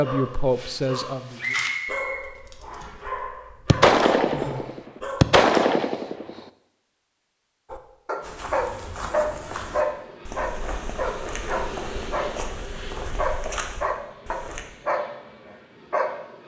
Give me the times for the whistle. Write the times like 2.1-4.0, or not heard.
1.4-3.0.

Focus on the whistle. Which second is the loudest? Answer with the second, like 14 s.
2 s.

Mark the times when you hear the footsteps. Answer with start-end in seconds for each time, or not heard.
8.2-14.7.